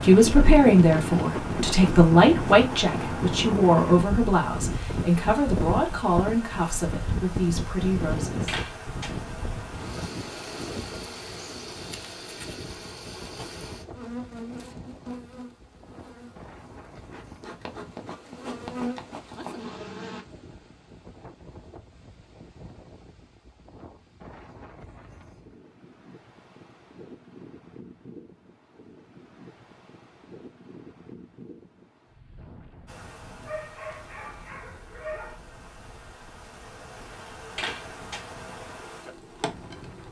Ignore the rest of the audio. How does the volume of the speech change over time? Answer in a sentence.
The loudness of the speech goes down.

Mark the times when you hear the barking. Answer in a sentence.
The barking can be heard from 33.4 to 35.4 s.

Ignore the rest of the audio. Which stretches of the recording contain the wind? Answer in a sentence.
You can hear the wind from 0.0 to 40.0 s.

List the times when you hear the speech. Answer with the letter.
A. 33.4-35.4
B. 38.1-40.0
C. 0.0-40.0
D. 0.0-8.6
D.